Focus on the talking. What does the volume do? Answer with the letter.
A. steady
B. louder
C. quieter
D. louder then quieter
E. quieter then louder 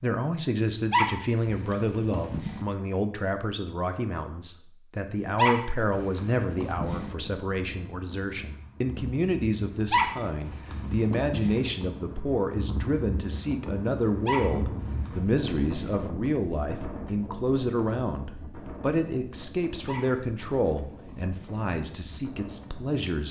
A.